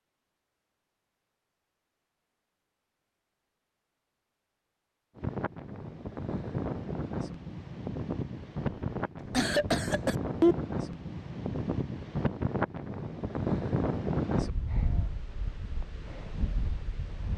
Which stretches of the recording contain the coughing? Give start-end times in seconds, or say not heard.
8.7-10.6.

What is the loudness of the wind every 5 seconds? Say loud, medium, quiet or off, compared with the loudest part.
off, loud, loud, medium.